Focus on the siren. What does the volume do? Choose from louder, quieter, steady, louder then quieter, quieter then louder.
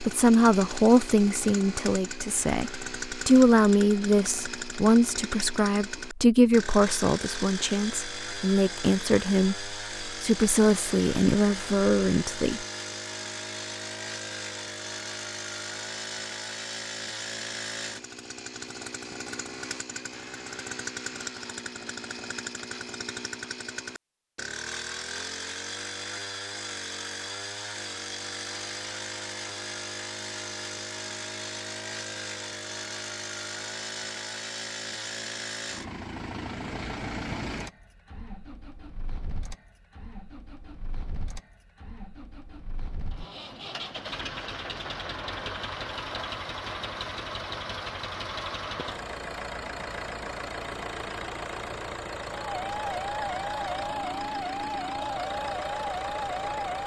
steady.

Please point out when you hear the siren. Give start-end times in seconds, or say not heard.
52.4-56.8.